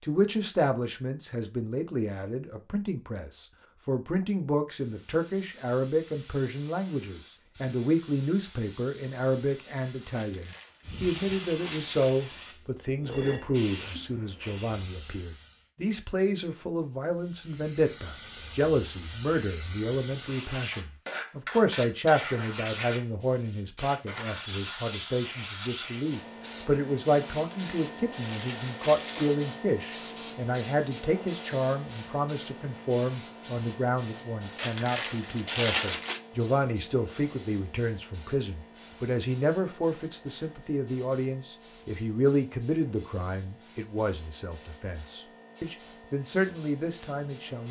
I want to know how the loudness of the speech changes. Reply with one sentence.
The loudness of the speech stays about the same.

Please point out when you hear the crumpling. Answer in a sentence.
The crumpling can be heard from 10.2 to 12.1 s, from 27.3 to 29.3 s and from 34.5 to 36.2 s.